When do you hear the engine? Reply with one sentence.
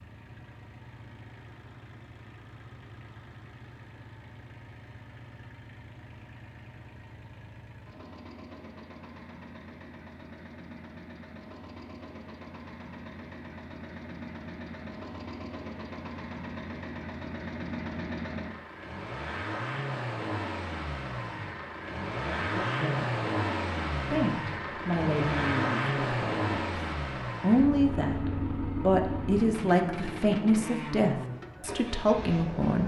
You can hear the engine from 0.0 to 32.8 s.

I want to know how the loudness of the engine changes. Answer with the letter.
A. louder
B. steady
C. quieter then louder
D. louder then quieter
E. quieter
A.